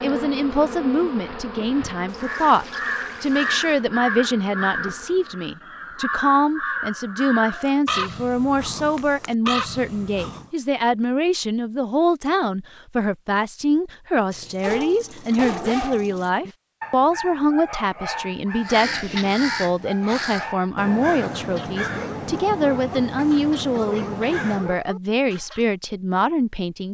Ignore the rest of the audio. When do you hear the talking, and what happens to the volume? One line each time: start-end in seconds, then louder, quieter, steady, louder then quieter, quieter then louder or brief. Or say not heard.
0.0-26.8 steady.